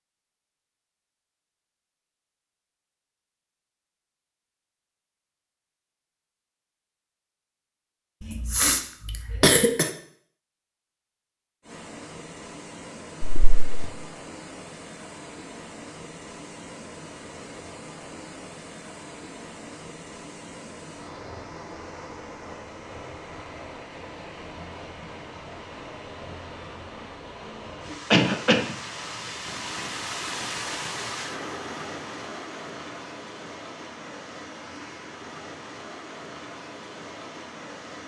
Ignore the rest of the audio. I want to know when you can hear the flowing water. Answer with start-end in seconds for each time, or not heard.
11.6-38.0.